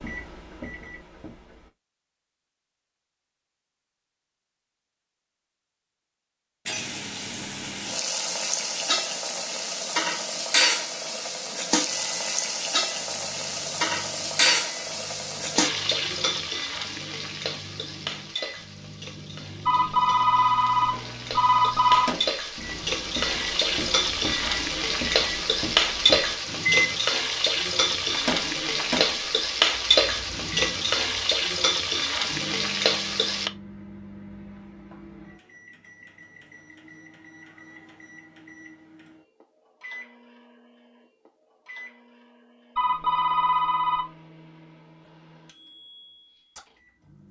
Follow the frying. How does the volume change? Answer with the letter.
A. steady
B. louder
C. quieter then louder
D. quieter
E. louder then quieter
C.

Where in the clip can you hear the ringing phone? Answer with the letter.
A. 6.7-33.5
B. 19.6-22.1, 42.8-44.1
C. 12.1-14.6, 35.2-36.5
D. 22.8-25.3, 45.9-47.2
B.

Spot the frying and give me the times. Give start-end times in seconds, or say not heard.
6.7-33.5.